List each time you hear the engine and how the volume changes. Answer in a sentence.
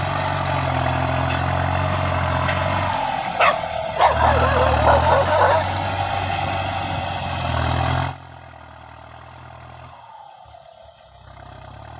You can hear the engine from 0.0 to 11.9 s, getting quieter.